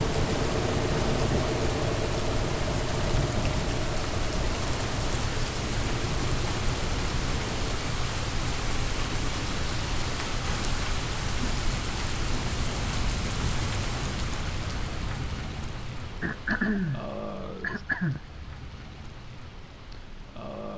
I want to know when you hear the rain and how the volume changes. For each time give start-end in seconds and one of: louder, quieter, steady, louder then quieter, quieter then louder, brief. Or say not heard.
0.0-20.7 quieter.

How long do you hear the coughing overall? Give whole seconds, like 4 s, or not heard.
2 s.